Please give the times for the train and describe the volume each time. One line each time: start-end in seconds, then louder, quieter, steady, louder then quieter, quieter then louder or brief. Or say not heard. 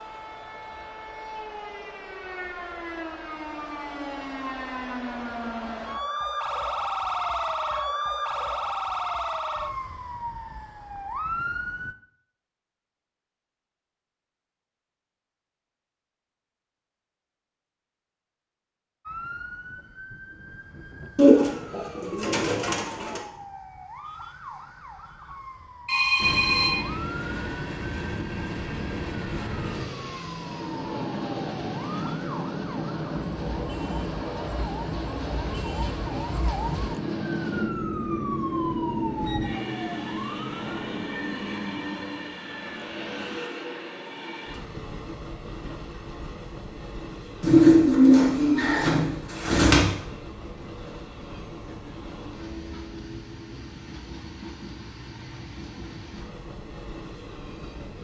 26.1-57.9 quieter.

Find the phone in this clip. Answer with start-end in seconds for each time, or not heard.
25.9-26.8.